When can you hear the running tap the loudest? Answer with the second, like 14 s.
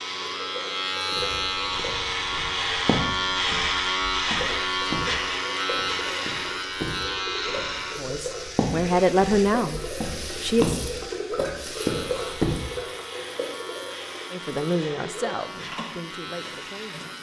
12 s.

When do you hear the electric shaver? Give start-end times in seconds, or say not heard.
0.0-17.1.